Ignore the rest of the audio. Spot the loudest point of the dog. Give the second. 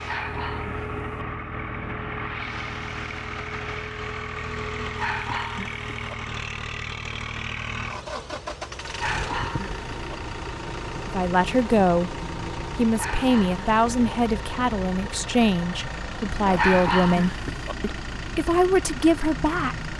17 s.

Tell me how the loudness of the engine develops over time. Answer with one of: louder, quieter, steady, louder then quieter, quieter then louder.
steady.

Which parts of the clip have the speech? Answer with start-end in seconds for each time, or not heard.
11.1-19.9.